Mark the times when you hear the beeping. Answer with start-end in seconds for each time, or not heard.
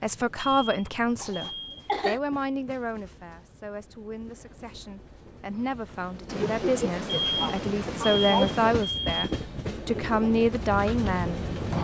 0.3-1.9, 7.0-9.4.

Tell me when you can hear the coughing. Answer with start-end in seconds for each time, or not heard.
1.1-2.2, 6.2-8.8.